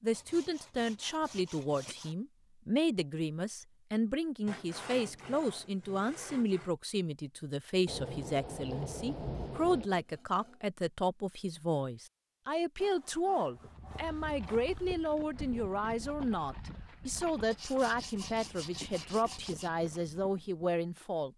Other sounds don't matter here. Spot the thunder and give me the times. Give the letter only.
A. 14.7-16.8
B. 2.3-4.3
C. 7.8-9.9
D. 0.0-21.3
C.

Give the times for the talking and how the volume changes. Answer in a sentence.
The talking can be heard from 0.0 to 21.3 s, at a steady volume.